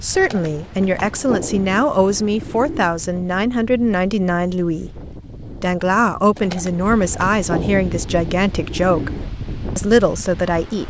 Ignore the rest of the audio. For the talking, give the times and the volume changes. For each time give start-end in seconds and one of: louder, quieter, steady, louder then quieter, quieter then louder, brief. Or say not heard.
0.0-9.1 steady
9.8-10.8 brief.